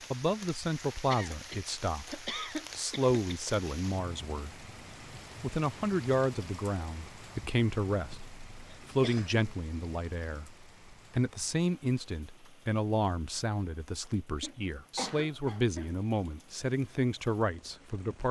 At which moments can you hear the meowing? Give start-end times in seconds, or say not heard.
not heard.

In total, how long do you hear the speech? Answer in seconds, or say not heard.
17 s.